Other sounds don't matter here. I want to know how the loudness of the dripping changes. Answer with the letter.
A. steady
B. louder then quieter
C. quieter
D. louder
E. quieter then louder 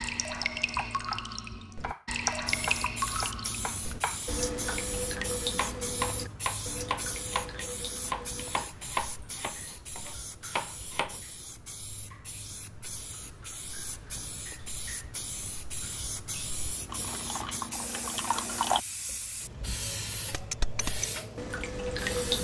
E.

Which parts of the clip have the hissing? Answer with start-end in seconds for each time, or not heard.
2.5-22.3.